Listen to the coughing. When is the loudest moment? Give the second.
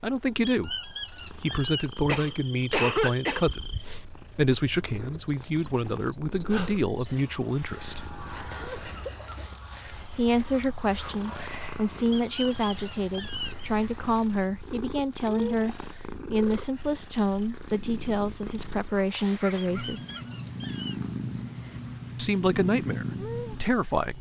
3 s.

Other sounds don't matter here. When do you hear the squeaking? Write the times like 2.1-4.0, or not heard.
0.5-2.0, 12.1-13.7, 19.6-21.0.